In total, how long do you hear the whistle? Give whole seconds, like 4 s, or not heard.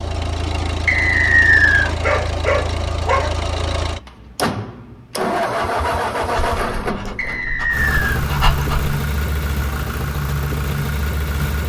2 s.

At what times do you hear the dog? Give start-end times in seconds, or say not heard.
1.9-3.4, 6.3-8.9.